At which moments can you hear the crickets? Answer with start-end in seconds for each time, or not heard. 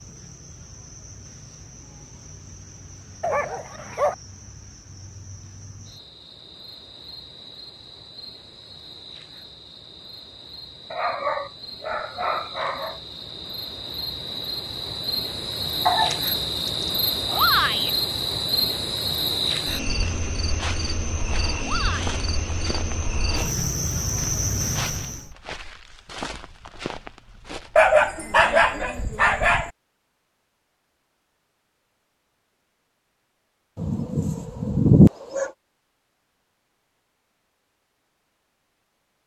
0.0-25.3.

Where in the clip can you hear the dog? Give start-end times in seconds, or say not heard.
3.2-4.2, 10.9-13.0, 15.8-17.4, 27.8-29.7, 33.8-35.5.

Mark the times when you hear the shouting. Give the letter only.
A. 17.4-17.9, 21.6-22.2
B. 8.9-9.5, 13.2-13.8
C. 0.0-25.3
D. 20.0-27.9
A.